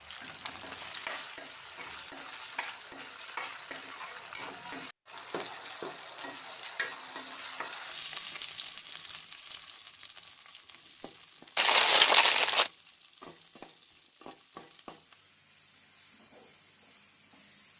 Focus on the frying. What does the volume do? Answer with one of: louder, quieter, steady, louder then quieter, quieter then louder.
quieter.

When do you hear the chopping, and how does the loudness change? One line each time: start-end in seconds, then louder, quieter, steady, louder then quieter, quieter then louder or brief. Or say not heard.
not heard.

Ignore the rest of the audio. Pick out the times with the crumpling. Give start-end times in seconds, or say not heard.
0.2-1.1, 11.6-12.7.